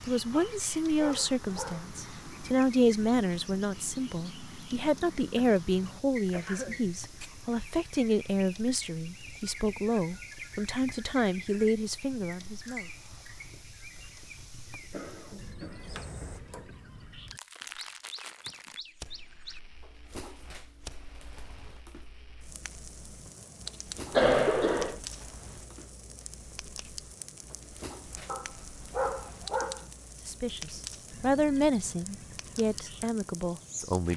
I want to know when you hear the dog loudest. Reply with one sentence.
The volume of the dog peaks at 29 seconds.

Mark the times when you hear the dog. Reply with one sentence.
You can hear the dog from 0.3 to 1.9 s and from 28.2 to 29.9 s.